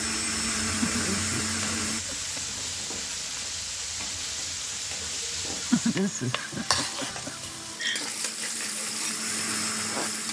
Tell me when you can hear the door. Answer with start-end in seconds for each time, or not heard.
not heard.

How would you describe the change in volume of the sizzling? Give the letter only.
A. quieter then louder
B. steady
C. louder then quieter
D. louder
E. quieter
B.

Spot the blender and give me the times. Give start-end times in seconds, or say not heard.
0.0-2.0, 6.0-10.2.